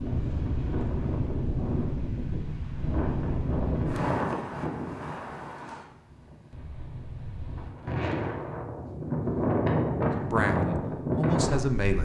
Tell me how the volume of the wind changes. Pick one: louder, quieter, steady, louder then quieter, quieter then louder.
quieter then louder.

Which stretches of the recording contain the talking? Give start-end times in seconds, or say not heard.
10.2-11.9.